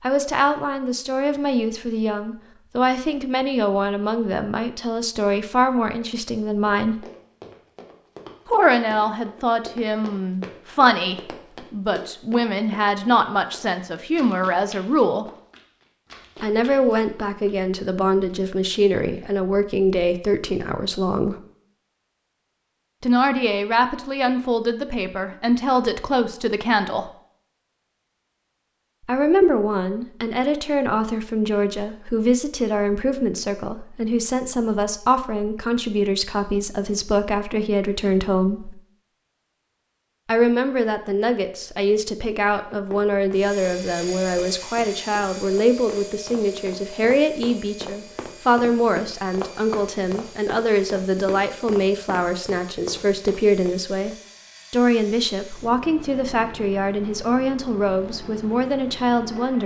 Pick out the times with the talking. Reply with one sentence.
You can hear the talking from 0.0 to 7.0 s, from 8.4 to 15.2 s, from 16.4 to 21.4 s, from 23.0 to 27.1 s, from 29.1 to 38.8 s and from 40.2 to 59.6 s.